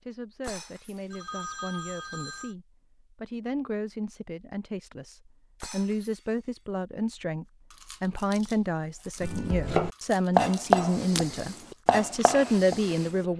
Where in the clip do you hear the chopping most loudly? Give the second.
11 s.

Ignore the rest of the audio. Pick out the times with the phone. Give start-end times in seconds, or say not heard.
1.1-2.5.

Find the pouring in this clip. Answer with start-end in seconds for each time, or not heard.
not heard.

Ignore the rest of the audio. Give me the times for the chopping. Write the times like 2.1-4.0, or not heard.
9.2-13.2.